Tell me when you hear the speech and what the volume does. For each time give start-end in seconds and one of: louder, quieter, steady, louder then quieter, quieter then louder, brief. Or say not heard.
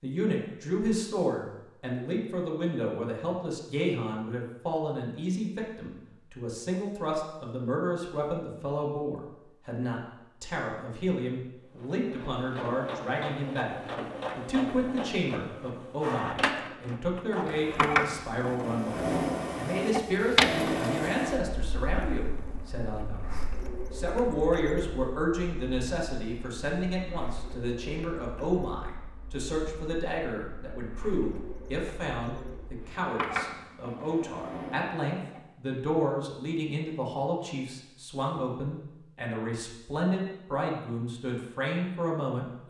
0.0-13.8 steady
14.3-42.6 steady.